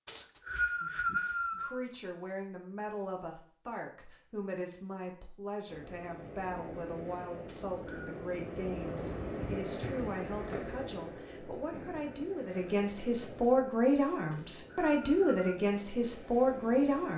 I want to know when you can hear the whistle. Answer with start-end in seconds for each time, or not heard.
0.1-1.8, 7.5-8.1, 14.3-15.6.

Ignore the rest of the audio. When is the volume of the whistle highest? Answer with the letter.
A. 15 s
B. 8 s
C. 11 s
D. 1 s
D.